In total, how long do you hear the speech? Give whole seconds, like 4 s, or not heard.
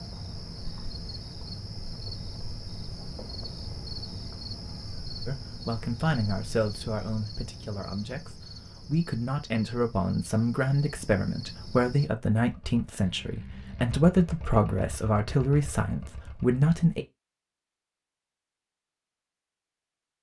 12 s.